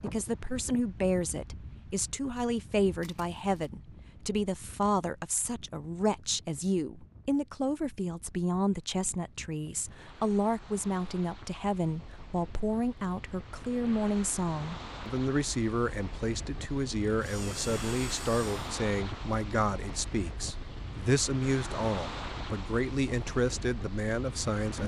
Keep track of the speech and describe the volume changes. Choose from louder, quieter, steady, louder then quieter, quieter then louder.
steady.